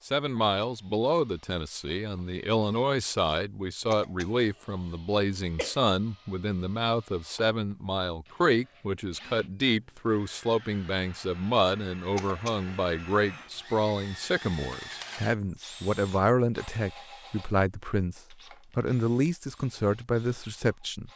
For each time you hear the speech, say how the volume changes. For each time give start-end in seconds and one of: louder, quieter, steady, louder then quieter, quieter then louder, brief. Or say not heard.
0.1-21.1 steady.